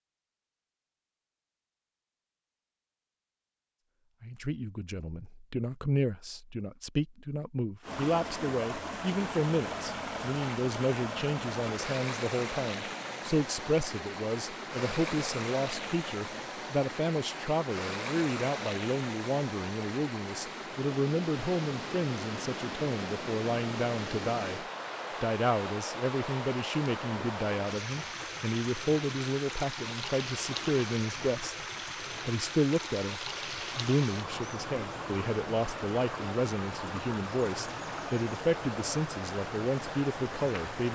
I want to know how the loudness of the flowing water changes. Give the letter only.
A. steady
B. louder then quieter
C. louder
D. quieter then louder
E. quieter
A.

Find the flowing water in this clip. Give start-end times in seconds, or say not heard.
7.8-40.9.